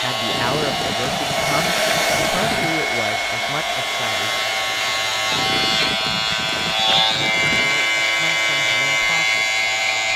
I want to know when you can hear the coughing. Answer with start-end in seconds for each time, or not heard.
not heard.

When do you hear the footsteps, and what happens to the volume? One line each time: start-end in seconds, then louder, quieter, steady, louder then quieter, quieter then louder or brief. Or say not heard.
not heard.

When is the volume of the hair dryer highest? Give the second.
2 s.